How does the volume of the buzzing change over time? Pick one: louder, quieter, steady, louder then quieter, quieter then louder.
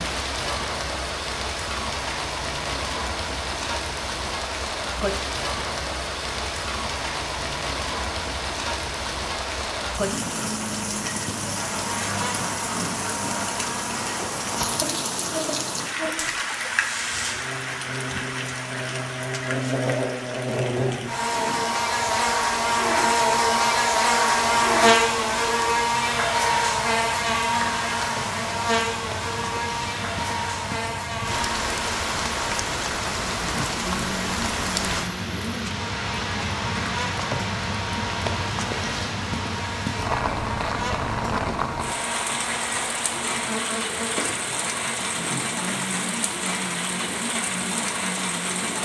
louder then quieter.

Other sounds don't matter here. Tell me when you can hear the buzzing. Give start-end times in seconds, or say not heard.
11.6-48.8.